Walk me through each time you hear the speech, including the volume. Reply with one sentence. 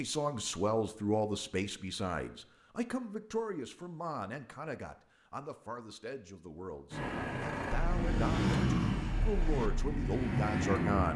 The speech can be heard from 0.0 to 11.1 s, getting quieter then louder.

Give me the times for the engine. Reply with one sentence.
The engine can be heard from 6.9 to 11.1 s.